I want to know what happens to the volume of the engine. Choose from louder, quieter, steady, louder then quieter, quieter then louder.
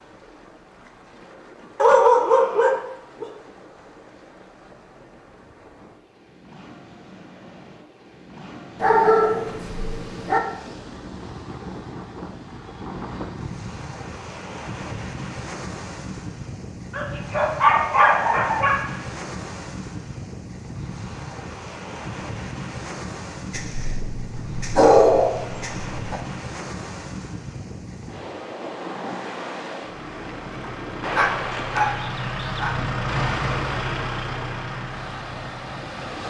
louder then quieter.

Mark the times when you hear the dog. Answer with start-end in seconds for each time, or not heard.
1.8-3.2, 8.8-10.4, 16.9-18.9, 23.5-26.2, 31.1-32.7.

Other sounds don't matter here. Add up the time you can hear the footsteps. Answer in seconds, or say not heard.
not heard.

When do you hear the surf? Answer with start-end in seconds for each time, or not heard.
0.0-36.2.